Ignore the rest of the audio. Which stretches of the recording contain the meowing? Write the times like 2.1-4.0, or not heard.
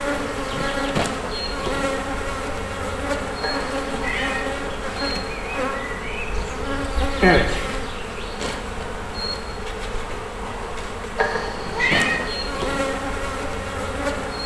3.4-4.5, 11.2-12.2.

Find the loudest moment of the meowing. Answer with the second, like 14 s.
12 s.